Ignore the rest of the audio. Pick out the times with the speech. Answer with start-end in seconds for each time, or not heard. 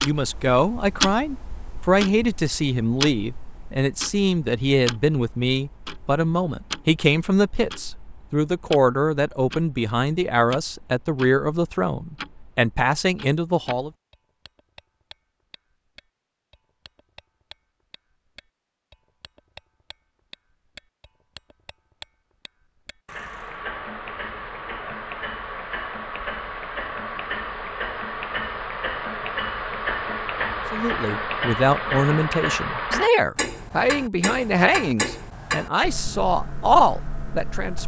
0.0-13.9, 30.7-37.8.